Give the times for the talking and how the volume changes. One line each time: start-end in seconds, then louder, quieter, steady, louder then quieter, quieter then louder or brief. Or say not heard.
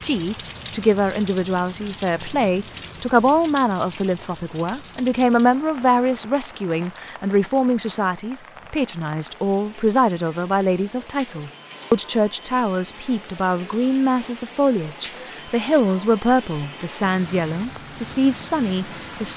0.0-19.3 steady.